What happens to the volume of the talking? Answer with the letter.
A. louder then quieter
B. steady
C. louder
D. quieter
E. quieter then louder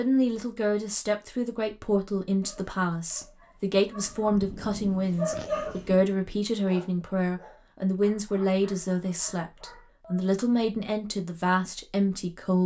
B.